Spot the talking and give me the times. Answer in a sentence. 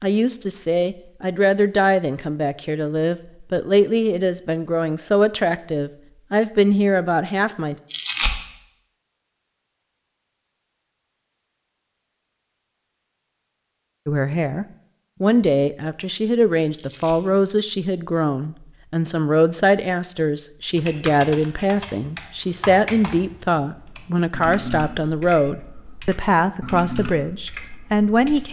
You can hear the talking from 0.0 to 7.8 s and from 14.1 to 28.4 s.